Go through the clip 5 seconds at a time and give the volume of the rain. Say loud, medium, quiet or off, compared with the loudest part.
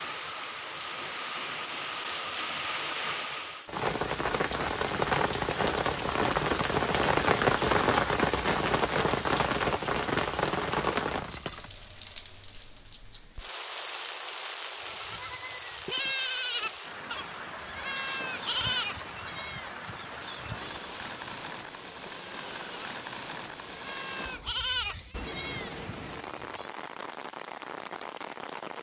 medium, loud, medium, quiet, quiet, quiet.